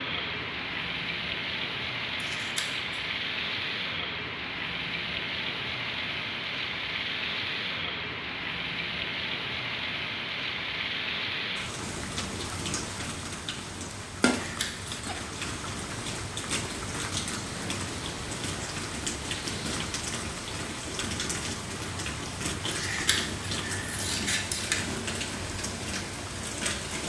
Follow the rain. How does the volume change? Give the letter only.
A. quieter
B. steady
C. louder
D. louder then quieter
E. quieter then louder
B.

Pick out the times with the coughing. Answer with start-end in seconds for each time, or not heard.
not heard.